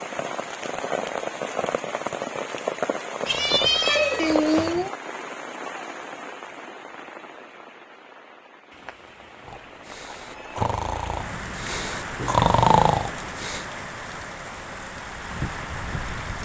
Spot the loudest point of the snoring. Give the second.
13 s.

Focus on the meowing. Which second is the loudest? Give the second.
4 s.